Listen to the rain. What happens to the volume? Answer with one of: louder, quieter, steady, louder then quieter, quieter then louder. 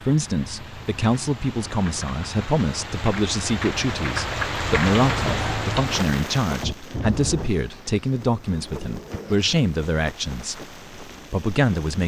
louder then quieter.